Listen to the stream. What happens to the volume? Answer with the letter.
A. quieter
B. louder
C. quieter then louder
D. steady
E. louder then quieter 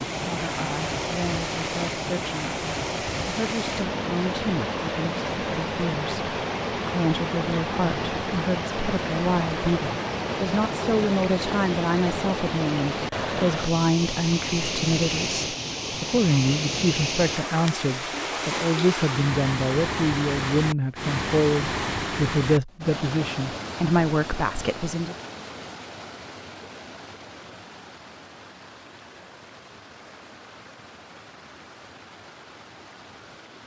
A.